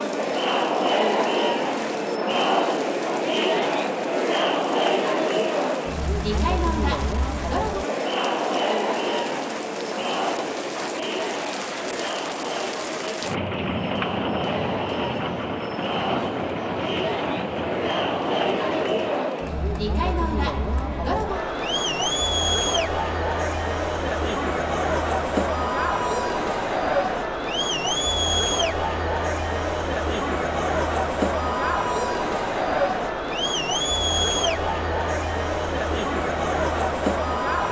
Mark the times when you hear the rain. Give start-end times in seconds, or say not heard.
0.0-19.3.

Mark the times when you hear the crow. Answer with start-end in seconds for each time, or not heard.
not heard.